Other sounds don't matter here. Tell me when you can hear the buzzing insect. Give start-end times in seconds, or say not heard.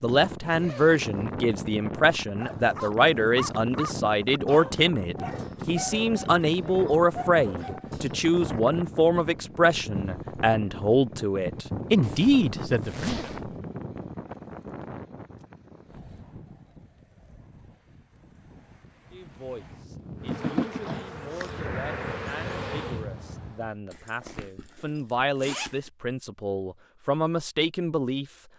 20.2-23.1.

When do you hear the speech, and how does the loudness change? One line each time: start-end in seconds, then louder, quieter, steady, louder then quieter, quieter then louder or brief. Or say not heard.
0.0-13.2 steady
19.1-28.3 louder.